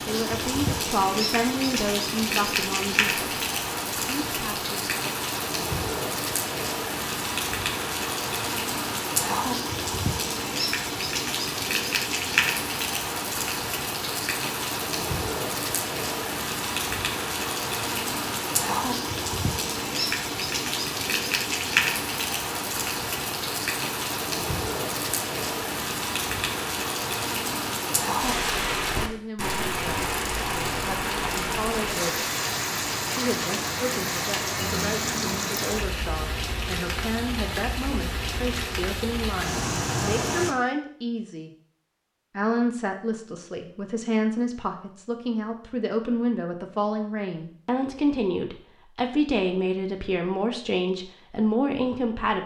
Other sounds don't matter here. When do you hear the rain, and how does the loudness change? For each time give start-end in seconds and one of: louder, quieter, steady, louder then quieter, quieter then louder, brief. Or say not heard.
0.0-40.5 steady.